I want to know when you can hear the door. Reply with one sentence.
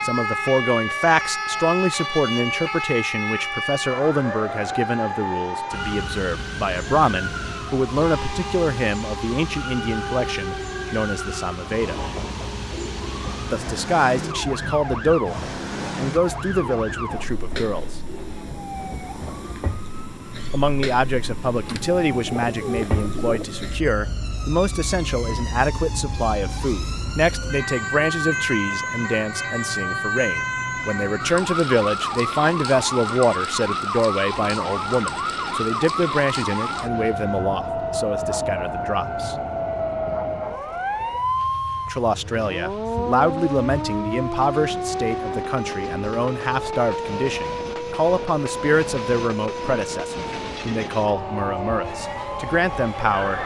The door can't be heard in this clip.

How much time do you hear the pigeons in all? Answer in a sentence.
The pigeons can be heard for 2 seconds in total.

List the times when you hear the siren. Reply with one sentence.
You can hear the siren from 0.0 to 53.4 s.